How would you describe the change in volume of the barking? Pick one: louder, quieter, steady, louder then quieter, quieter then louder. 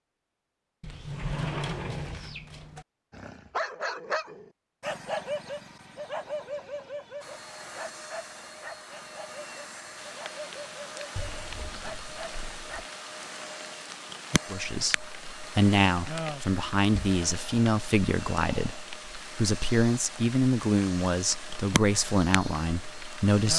quieter.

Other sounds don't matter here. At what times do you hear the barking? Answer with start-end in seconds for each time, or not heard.
3.1-12.9.